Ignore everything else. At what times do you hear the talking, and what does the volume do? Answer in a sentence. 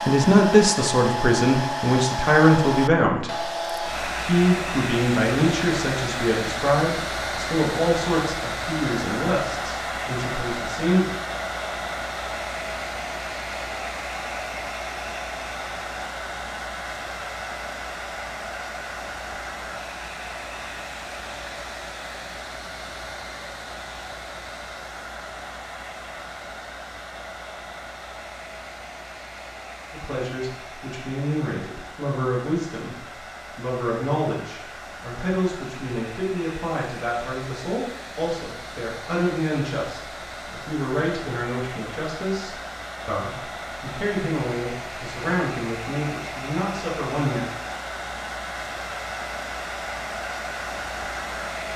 You can hear the talking from 0.1 to 11.1 s, getting quieter; and from 29.9 to 47.5 s, at a steady volume.